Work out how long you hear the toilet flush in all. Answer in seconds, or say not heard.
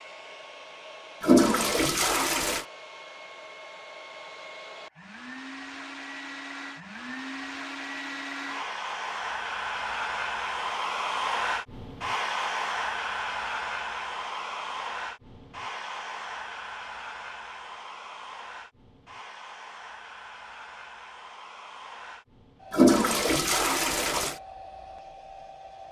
3 s.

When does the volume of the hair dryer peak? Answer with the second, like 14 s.
11 s.